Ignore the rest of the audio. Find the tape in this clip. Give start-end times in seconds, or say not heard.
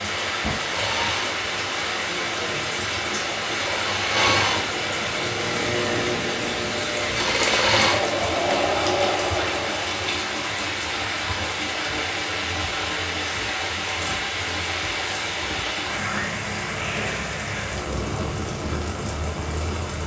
not heard.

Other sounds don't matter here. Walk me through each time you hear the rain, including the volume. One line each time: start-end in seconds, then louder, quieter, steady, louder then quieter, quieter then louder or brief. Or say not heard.
0.0-20.0 steady.